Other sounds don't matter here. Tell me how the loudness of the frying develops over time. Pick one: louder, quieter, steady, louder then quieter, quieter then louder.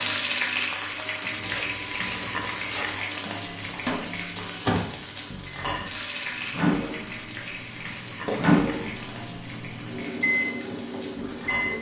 quieter.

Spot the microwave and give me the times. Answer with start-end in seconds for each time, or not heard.
3.5-11.7.